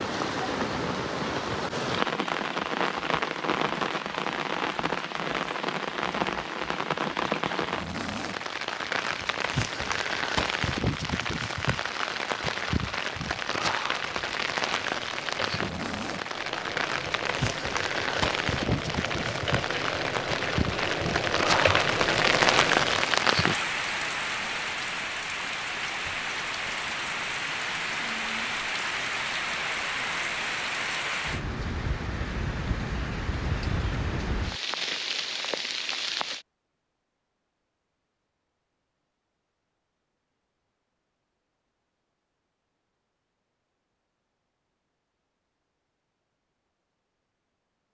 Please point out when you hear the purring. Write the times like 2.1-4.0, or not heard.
not heard.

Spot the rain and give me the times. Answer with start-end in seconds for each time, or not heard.
0.0-36.5.